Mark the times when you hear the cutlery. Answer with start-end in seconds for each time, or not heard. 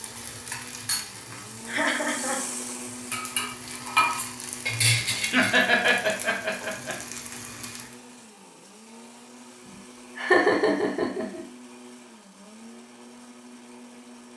not heard.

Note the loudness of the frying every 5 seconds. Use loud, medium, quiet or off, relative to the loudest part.
loud, medium, off.